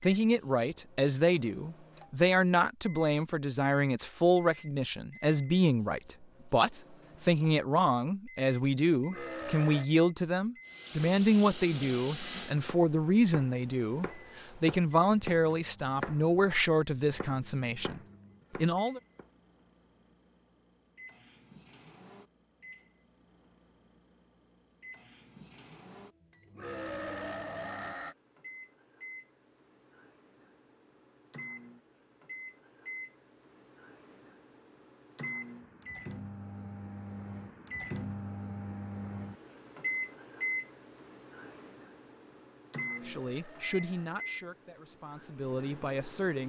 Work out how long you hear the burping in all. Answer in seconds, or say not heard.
4 s.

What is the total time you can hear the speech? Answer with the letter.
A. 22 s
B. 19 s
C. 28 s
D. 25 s
A.